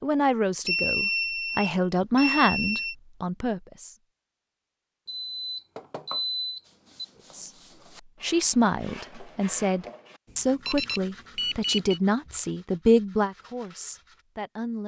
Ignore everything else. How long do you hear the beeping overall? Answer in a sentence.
You can hear the beeping for 6 seconds altogether.